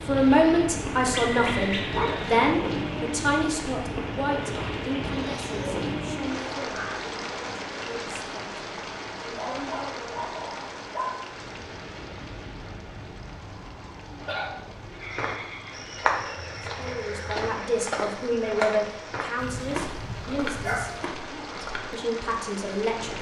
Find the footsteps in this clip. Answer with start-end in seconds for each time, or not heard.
15.1-21.9.